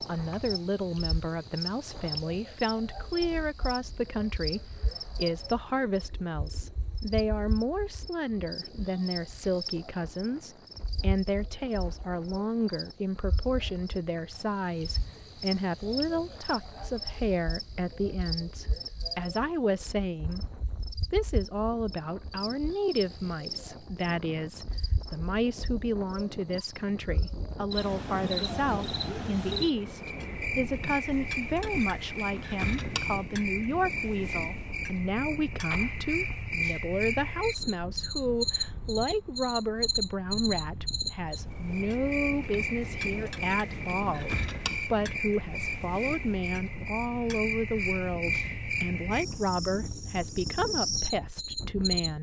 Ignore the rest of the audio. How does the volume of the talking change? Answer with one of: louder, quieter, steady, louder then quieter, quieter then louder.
steady.